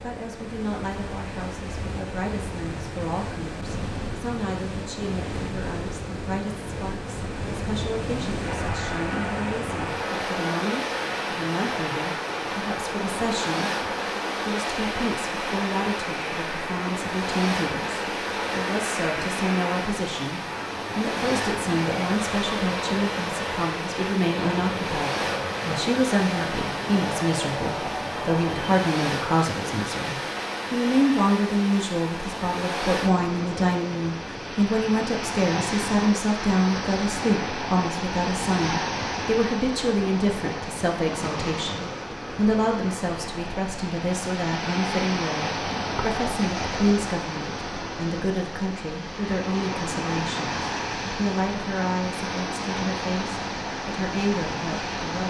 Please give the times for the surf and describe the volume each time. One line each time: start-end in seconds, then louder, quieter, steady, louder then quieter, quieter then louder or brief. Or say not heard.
0.0-55.2 steady.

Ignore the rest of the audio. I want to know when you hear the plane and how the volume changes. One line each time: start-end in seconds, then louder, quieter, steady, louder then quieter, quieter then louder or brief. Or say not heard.
8.4-28.9 steady.